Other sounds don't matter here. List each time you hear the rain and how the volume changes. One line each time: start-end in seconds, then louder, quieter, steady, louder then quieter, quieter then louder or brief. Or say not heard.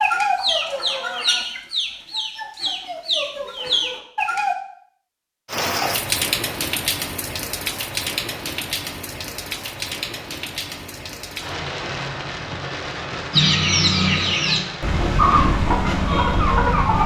5.5-17.0 quieter.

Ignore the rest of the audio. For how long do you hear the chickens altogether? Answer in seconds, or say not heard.
8 s.